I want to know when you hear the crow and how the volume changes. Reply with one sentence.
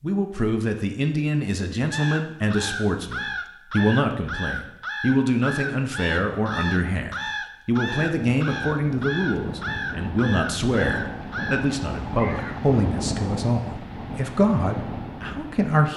You can hear the crow from 1.9 to 12.6 s, at a steady volume.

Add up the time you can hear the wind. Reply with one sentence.
You can hear the wind for 8 seconds altogether.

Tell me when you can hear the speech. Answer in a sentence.
The speech can be heard from 0.0 to 15.9 s.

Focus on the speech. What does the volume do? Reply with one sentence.
The volume of the speech stays about the same.